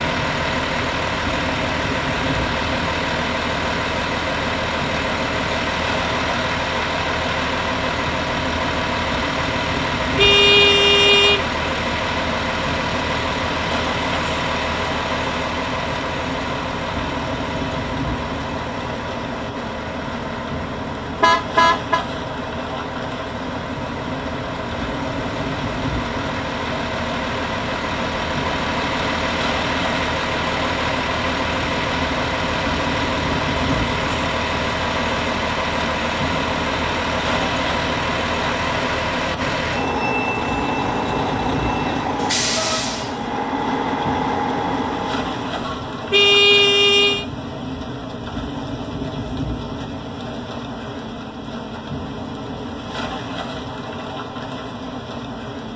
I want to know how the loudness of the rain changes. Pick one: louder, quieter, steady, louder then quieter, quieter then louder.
steady.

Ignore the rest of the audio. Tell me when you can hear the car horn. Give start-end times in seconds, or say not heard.
10.2-11.4, 21.2-22.0, 46.1-47.2.